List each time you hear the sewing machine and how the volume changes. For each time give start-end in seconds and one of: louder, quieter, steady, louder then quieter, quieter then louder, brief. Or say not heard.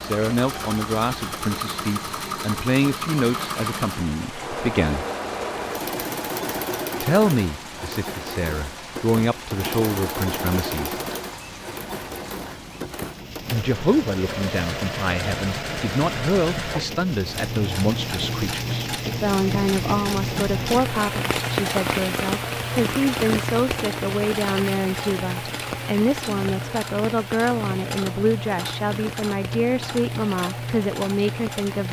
0.0-31.8 steady.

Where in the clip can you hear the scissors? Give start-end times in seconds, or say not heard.
not heard.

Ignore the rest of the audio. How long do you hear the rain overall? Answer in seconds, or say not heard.
32 s.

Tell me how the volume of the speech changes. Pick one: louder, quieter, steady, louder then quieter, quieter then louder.
steady.